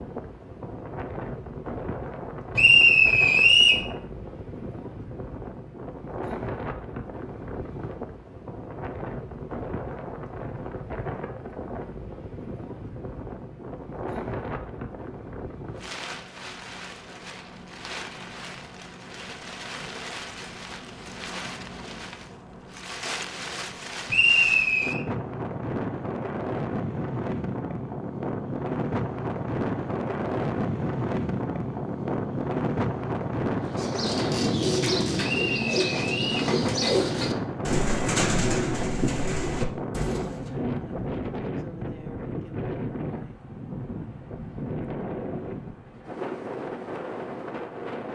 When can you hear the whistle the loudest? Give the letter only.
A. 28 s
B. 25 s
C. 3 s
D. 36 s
C.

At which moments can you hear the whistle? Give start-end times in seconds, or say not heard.
2.5-3.9, 24.1-25.0, 35.2-36.5.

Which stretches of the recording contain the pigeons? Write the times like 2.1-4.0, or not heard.
33.6-40.5.